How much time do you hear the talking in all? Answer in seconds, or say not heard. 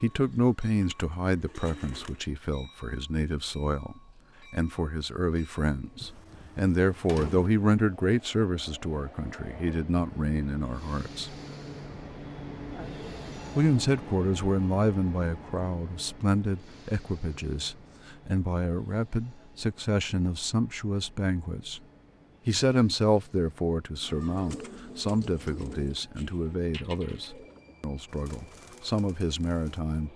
27 s.